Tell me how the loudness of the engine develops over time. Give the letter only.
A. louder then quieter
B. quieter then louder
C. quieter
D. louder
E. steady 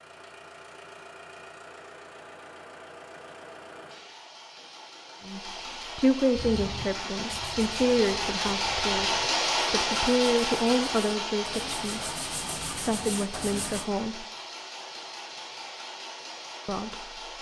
A.